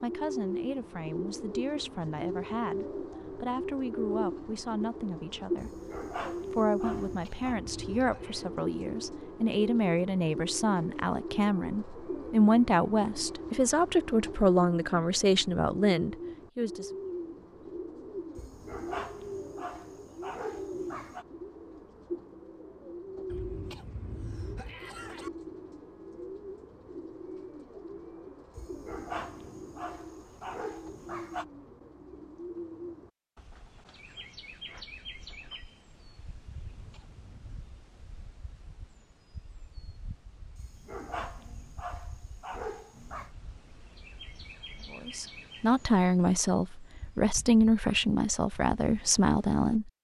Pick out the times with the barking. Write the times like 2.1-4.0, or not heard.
5.5-7.5, 18.4-21.2, 28.6-31.4, 40.5-43.3.